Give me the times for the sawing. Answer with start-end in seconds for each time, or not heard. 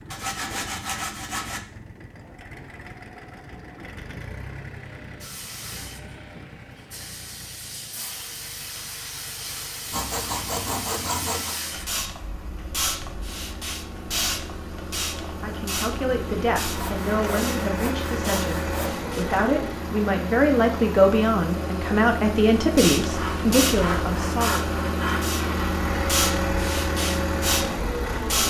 0.1-1.6, 9.9-11.6, 16.8-18.9, 23.1-25.7.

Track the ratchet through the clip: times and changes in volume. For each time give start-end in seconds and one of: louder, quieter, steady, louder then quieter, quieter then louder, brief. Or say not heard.
not heard.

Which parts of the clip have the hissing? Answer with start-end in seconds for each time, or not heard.
5.2-19.2, 22.8-28.4.